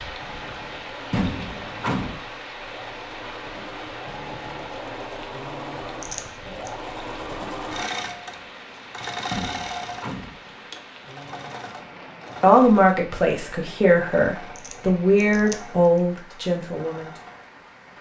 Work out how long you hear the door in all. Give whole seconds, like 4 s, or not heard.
2 s.